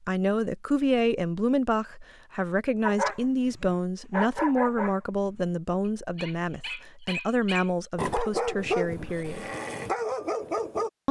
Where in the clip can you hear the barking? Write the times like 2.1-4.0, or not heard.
2.8-10.9.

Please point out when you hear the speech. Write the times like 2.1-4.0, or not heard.
0.0-9.4.